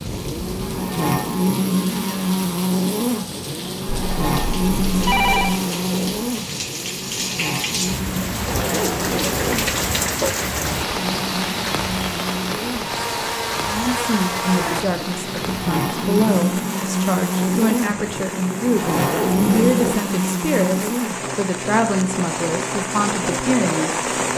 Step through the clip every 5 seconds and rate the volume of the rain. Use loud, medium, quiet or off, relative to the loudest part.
medium, loud, loud, medium, loud.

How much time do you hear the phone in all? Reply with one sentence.
You can hear the phone for 2 seconds altogether.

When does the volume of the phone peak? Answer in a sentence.
The loudest moment of the phone is at 5 seconds.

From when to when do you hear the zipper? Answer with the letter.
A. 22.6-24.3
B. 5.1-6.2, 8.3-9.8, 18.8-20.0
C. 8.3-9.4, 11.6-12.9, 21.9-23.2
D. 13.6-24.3
B.